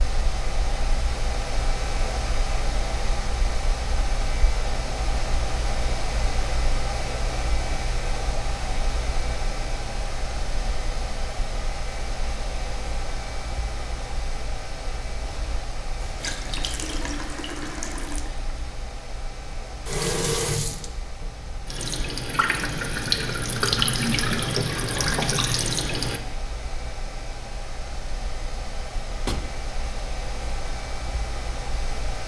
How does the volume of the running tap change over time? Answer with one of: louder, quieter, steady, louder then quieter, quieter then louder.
louder.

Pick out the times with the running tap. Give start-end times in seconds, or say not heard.
16.1-26.2.